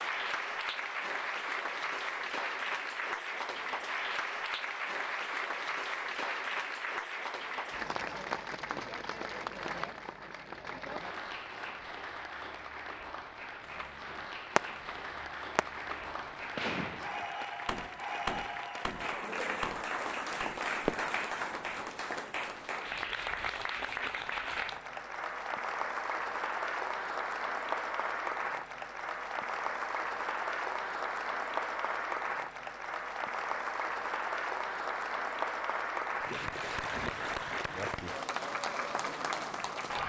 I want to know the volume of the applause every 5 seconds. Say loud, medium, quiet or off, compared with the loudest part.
loud, loud, medium, loud, loud, loud, loud, loud.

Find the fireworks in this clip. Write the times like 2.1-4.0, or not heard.
13.7-21.2.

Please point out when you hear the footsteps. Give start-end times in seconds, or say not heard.
not heard.